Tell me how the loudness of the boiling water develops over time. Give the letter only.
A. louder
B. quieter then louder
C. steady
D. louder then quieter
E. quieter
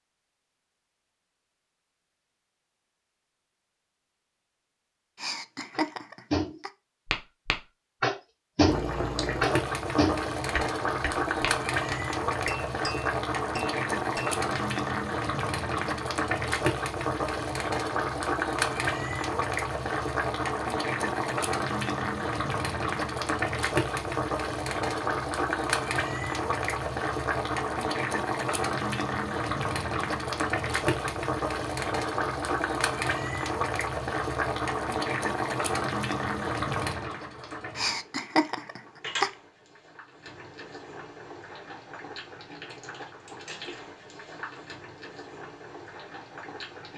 E.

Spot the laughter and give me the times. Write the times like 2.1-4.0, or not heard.
5.2-6.7, 37.8-39.3.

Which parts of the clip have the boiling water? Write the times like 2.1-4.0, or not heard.
8.7-46.9.